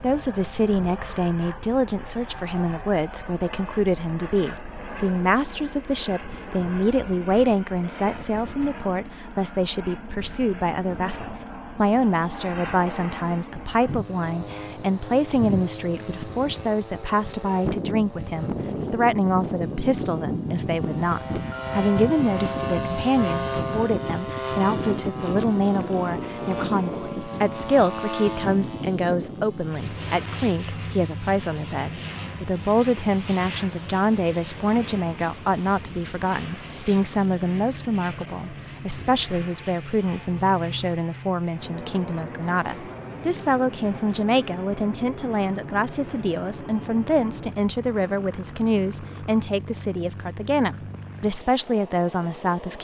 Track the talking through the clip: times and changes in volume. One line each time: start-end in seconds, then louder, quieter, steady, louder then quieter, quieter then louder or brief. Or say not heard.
0.0-52.8 steady.